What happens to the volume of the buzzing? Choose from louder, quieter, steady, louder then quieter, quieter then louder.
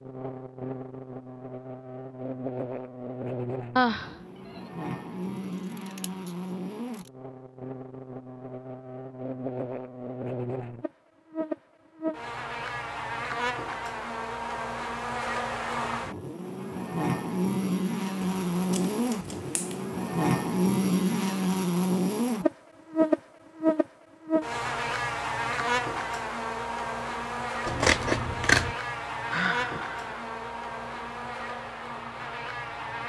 louder then quieter.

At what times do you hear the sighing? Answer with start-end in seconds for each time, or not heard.
3.8-4.6, 29.3-30.1.